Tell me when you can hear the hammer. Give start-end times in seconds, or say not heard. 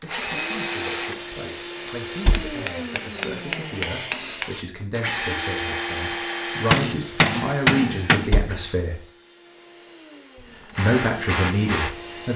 1.9-4.7, 6.5-8.3.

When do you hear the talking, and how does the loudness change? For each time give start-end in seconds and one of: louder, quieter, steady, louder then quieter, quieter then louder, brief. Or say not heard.
0.0-9.0 louder
10.4-12.3 brief.